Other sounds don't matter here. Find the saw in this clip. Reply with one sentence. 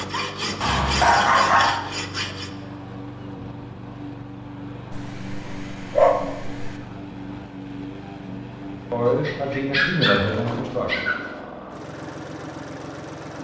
You can hear the saw from 0.0 to 2.5 s.